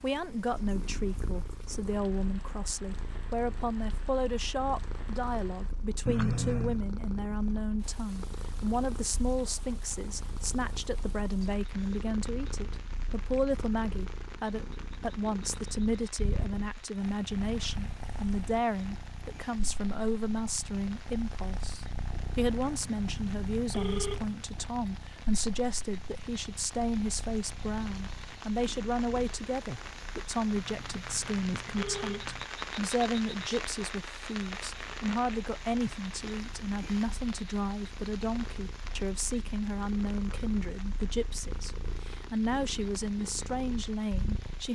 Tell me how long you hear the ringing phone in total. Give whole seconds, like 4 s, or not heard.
5 s.